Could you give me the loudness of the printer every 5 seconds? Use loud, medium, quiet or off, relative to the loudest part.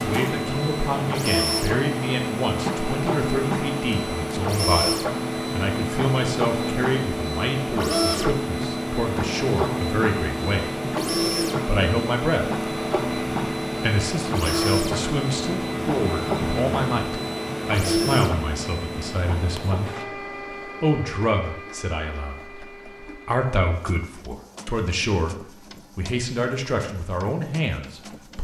loud, loud, loud, loud, quiet, quiet.